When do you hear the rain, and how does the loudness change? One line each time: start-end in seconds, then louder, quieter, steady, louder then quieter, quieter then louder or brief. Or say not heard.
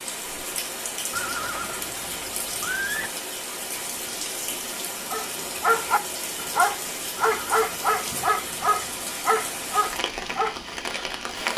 0.0-11.5 steady.